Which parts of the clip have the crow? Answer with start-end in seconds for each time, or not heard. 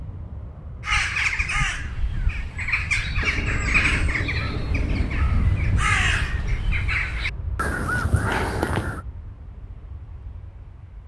0.8-9.1.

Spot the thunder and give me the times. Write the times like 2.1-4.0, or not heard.
3.2-5.2.